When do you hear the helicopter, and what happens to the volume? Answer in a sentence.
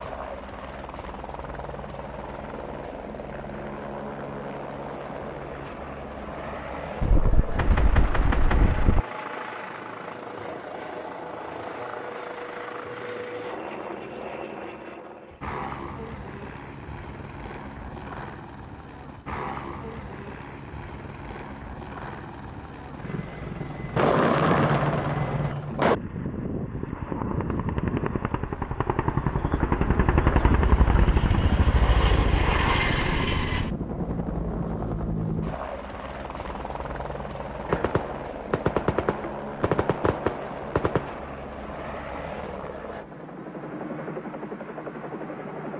The helicopter can be heard from 0.0 to 45.7 s, getting louder then quieter.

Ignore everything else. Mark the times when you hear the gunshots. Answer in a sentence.
The gunshots can be heard from 7.0 to 9.0 s, from 23.9 to 25.9 s and from 37.6 to 41.2 s.